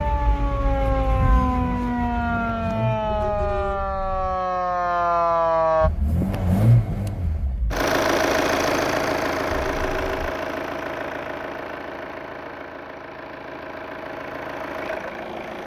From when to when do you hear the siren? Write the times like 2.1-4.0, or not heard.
0.0-5.9.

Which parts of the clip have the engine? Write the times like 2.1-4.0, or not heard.
0.0-3.6, 5.8-15.6.